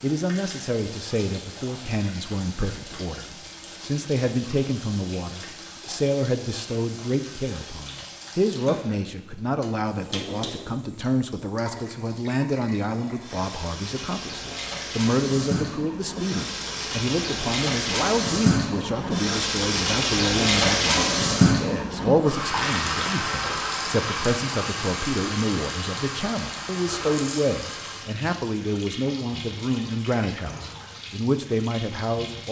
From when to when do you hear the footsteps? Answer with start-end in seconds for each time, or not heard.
not heard.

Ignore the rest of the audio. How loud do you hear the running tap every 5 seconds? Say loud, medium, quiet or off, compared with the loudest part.
quiet, quiet, quiet, loud, loud, medium, quiet.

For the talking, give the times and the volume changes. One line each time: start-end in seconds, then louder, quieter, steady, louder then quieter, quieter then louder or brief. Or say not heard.
0.0-32.4 steady.